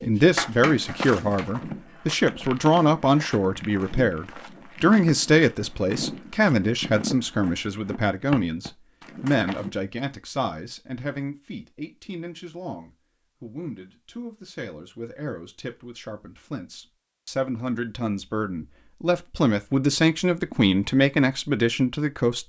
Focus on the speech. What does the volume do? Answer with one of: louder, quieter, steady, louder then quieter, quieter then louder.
quieter then louder.